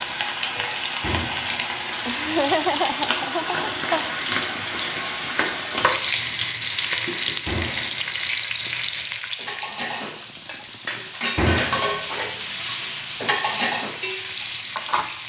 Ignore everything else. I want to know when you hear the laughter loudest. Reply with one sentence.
The loudest moment of the laughter is at 3 seconds.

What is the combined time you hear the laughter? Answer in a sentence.
The laughter can be heard for 2 seconds in total.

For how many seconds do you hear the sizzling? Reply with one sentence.
You can hear the sizzling for 15 seconds altogether.